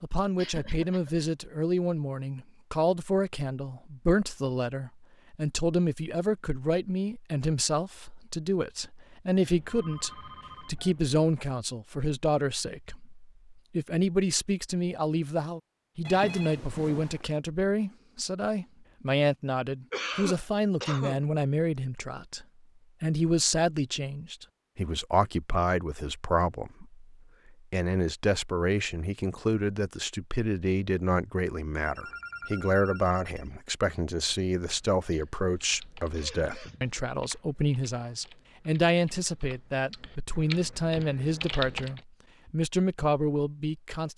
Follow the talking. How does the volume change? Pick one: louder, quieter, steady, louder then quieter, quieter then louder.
steady.